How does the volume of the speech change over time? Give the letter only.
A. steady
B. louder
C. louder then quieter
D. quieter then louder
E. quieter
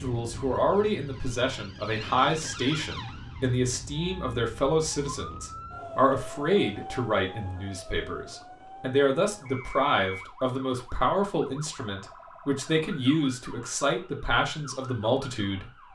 A.